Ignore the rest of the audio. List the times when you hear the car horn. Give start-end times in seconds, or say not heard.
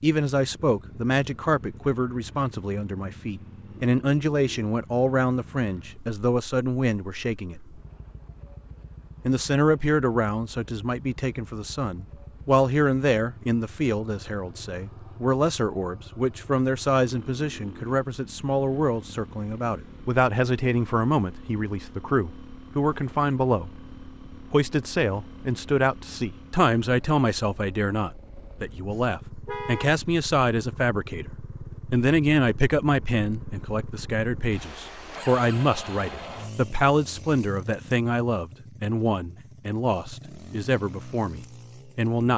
29.4-29.9.